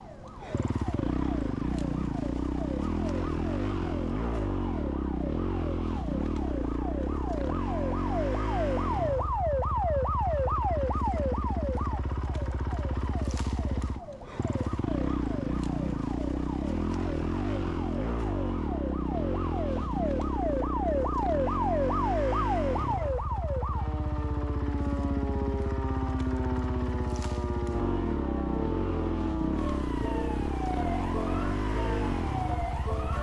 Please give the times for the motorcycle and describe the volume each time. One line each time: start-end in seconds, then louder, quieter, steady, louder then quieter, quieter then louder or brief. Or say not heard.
0.0-33.1 steady.